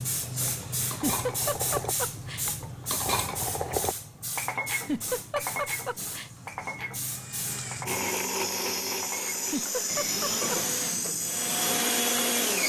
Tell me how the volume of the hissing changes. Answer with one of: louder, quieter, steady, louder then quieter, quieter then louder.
quieter then louder.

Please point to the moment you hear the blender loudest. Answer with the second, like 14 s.
12 s.